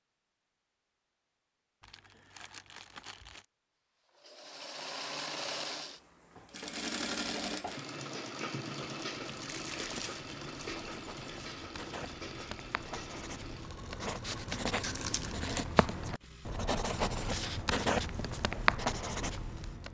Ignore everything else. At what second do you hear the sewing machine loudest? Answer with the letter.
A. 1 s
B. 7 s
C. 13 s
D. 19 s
B.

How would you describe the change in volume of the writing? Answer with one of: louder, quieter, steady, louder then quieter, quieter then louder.
louder.